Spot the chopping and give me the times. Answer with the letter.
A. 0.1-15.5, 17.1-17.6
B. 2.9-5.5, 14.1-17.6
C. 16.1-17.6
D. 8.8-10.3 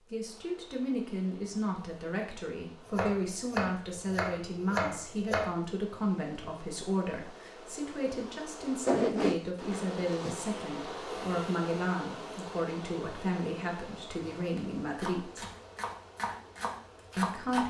B.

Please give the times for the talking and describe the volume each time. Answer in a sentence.
The talking can be heard from 0.1 to 15.5 s, at a steady volume; and briefly from 17.1 to 17.6 s.